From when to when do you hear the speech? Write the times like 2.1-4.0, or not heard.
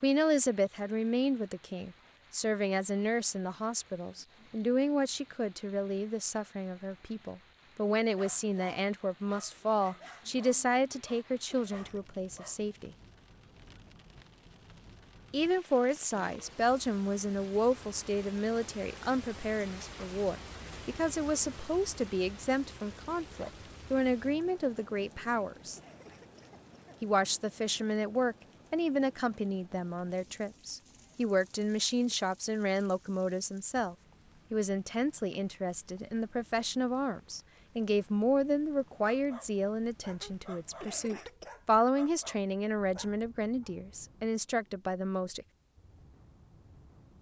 0.0-12.9, 15.3-25.8, 27.0-45.5.